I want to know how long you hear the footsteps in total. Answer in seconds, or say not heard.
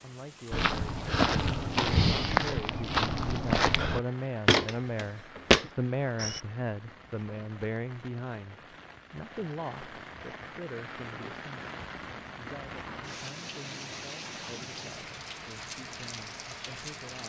6 s.